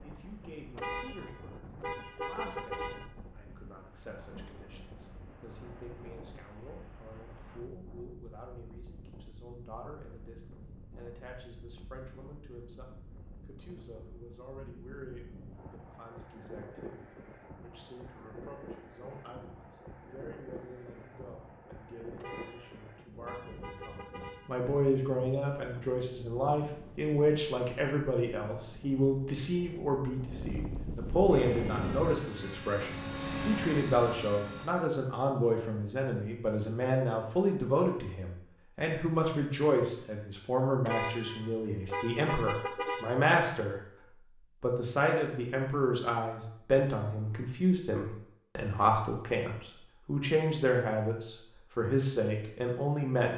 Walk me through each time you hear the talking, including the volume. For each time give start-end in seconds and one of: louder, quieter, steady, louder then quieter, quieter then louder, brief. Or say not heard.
0.0-43.8 louder
44.6-53.3 steady.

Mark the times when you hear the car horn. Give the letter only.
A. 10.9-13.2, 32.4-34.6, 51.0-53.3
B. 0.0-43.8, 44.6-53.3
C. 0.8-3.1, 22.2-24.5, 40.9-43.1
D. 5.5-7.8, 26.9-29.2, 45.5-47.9
C.